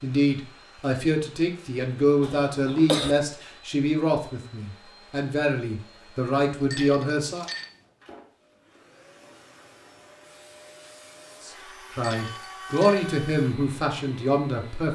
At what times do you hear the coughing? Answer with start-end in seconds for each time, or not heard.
2.2-3.1.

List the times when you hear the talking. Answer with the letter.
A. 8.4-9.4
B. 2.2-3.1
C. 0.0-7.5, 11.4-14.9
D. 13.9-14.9
C.